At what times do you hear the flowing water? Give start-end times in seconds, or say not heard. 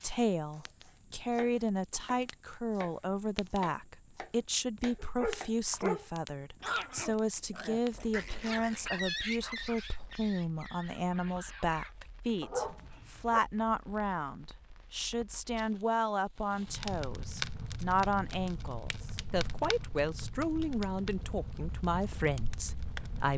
not heard.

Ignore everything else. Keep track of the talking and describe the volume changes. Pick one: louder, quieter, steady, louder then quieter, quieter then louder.
steady.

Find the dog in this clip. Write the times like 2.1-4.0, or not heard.
5.0-13.4.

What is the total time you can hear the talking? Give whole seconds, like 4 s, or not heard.
23 s.